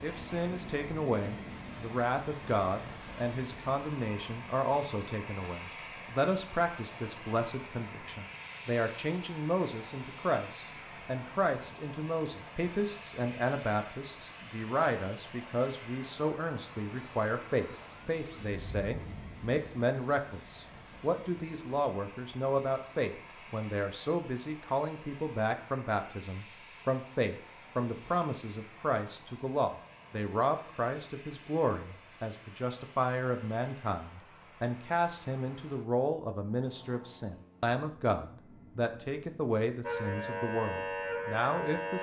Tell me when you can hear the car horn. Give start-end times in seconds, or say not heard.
not heard.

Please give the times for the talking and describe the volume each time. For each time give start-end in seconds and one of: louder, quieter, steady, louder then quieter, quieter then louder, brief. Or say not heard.
0.0-41.9 steady.